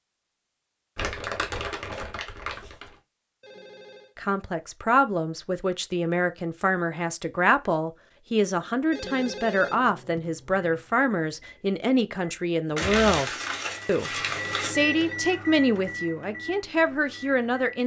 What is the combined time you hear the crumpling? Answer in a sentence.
The crumpling can be heard for 4 seconds in total.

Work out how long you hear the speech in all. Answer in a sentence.
You can hear the speech for 14 seconds altogether.